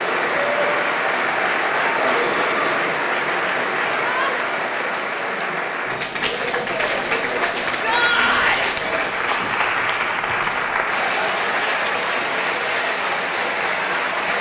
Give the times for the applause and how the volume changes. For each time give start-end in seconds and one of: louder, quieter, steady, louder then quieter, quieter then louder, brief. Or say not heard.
0.0-14.3 steady.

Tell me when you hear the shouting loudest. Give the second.
8 s.